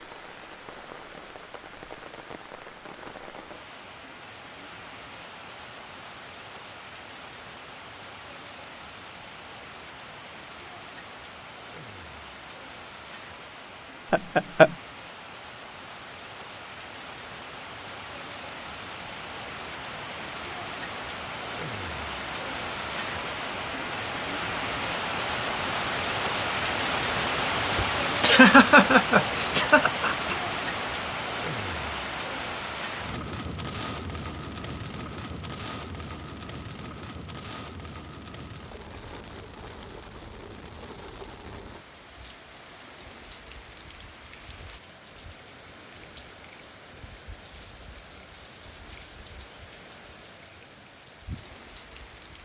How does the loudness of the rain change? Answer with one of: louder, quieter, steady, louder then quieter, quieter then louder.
louder then quieter.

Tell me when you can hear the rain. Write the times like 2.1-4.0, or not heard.
0.0-52.4.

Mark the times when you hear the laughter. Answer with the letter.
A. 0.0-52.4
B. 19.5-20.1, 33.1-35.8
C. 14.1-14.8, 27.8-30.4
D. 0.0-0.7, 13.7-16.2
C.